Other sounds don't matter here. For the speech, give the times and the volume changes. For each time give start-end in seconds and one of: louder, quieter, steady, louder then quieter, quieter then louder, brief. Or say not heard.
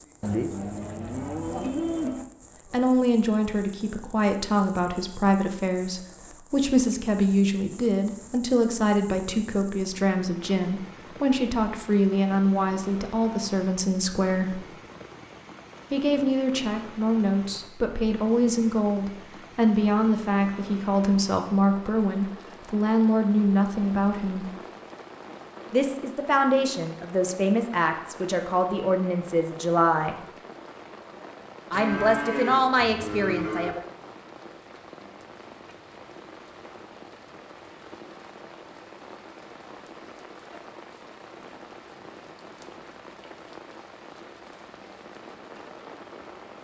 2.7-14.7 steady
15.9-24.5 steady
25.7-30.1 steady
31.7-33.8 brief.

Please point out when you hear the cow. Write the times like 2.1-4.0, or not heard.
0.2-2.2, 31.7-33.8.